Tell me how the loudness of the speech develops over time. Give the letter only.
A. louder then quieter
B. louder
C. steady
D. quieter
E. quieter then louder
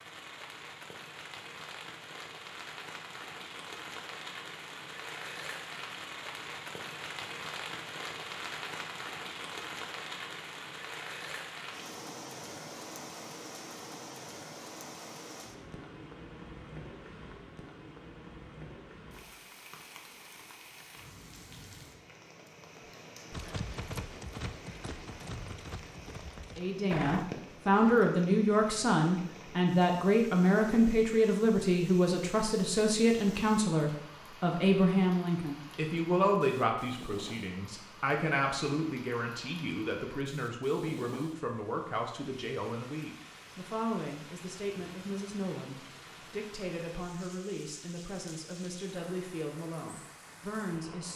D.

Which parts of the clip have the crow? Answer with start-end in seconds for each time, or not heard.
not heard.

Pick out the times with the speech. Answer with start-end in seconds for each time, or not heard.
26.6-51.1.